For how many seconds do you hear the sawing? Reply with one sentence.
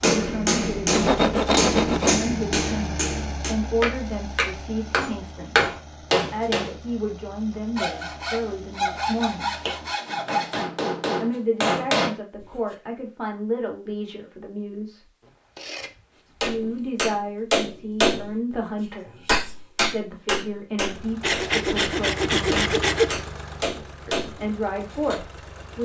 The sawing can be heard for 8 seconds in total.